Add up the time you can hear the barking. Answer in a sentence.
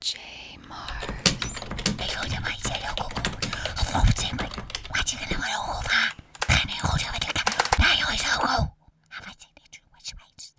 The barking can't be heard in this clip.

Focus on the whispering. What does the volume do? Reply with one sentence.
The volume of the whispering goes up.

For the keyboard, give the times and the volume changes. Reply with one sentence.
You can hear the keyboard from 0.8 to 8.4 s, getting quieter then louder.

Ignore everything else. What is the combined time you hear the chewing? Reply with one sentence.
You can't hear the chewing here.